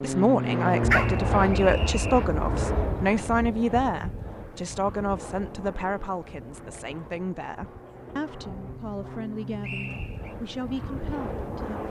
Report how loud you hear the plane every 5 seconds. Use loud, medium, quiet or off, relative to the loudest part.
loud, medium, medium.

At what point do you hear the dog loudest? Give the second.
1 s.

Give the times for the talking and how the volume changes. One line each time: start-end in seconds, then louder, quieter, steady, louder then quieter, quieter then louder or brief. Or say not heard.
0.0-11.8 quieter.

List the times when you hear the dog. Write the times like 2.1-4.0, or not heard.
0.8-3.1.